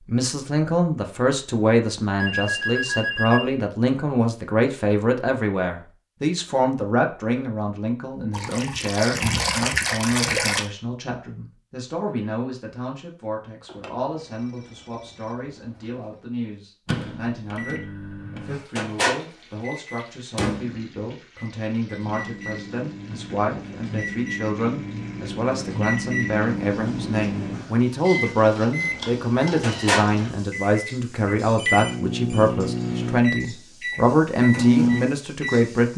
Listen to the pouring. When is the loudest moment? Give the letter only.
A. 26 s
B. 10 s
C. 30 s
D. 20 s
B.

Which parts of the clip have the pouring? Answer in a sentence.
The pouring can be heard from 8.3 to 10.7 s and from 28.8 to 30.3 s.